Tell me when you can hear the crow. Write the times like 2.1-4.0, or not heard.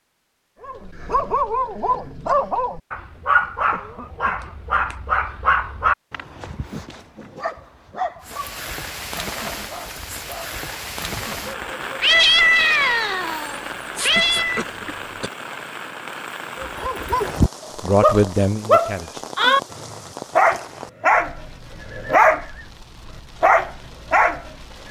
not heard.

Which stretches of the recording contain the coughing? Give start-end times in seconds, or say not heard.
3.7-4.5, 14.2-15.3.